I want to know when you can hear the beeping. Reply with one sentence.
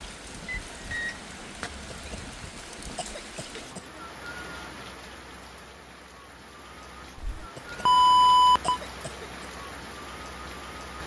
You can hear the beeping from 0.5 to 1.2 s and from 7.2 to 8.8 s.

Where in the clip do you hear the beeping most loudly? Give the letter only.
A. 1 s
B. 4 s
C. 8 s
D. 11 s
C.